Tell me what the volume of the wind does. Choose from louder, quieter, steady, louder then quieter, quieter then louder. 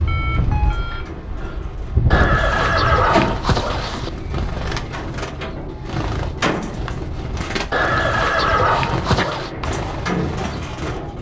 quieter.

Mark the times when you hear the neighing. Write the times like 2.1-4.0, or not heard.
2.1-4.1, 7.7-9.5.